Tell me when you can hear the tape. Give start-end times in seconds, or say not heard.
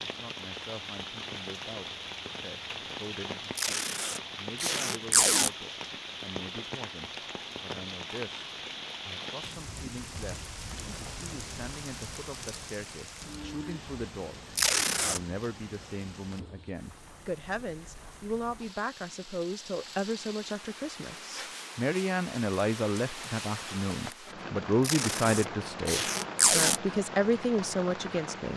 3.5-5.5, 14.6-15.2, 24.8-26.8.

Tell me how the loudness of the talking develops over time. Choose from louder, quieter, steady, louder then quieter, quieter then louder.
louder.